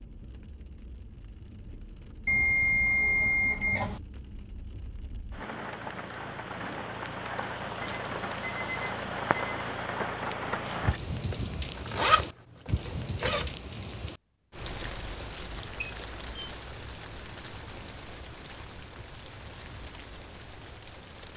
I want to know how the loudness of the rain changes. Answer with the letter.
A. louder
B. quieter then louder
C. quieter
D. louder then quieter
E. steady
D.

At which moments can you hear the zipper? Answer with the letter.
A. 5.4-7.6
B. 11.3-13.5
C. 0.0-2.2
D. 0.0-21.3
B.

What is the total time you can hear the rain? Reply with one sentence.
You can hear the rain for 21 seconds altogether.